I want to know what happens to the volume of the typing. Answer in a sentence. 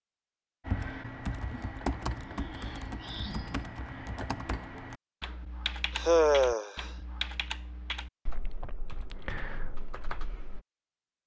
The loudness of the typing goes down.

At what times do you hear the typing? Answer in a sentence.
You can hear the typing from 0.7 to 10.6 s.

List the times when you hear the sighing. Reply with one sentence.
You can hear the sighing from 2.0 to 3.6 s and from 6.0 to 6.9 s.